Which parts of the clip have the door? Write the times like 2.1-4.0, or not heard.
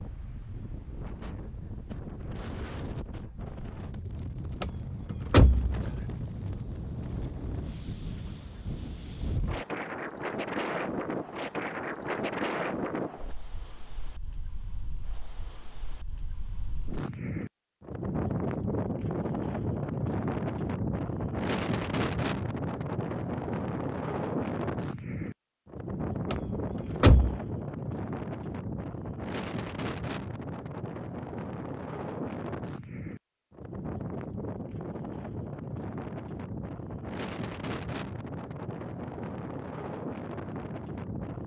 4.6-6.0, 26.3-27.4.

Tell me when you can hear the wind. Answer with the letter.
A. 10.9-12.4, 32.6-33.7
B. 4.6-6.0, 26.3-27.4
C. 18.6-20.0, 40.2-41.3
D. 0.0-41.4
D.